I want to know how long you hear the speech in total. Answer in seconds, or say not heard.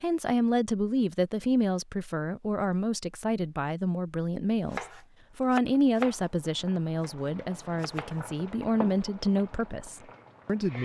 11 s.